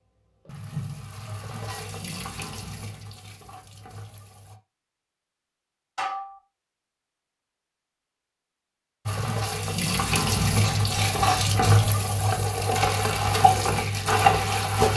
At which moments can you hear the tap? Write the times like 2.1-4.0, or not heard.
0.5-4.6, 9.1-14.9.